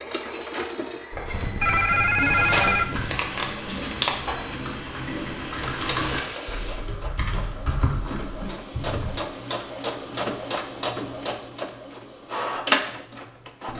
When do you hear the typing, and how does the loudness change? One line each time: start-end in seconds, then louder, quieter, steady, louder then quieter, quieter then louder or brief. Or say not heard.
1.1-9.2 steady.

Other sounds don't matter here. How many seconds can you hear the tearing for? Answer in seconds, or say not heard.
2 s.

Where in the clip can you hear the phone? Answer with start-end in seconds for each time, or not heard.
1.3-3.2.